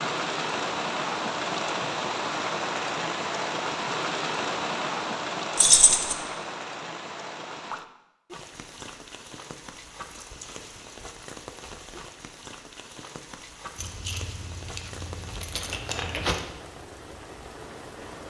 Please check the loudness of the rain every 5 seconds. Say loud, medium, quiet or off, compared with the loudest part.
loud, medium, quiet, quiet.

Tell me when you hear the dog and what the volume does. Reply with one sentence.
You can't hear the dog here.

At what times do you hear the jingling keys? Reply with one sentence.
The jingling keys can be heard from 5.5 to 6.2 s and from 13.8 to 16.4 s.